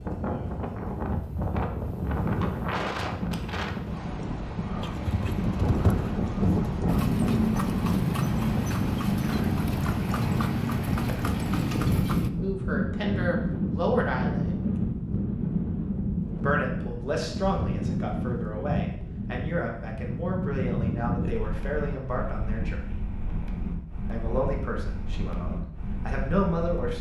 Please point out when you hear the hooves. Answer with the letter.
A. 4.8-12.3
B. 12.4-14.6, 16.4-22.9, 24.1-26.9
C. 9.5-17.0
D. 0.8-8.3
A.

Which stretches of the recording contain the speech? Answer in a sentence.
You can hear the speech from 12.4 to 14.6 s, from 16.4 to 22.9 s and from 24.1 to 26.9 s.